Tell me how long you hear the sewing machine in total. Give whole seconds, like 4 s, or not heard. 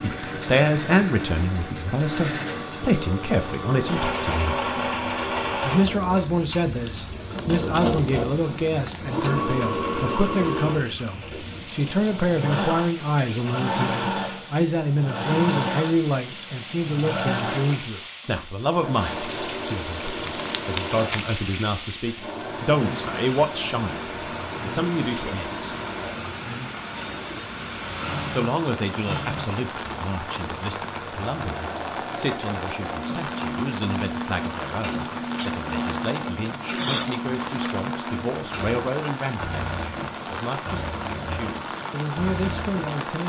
43 s.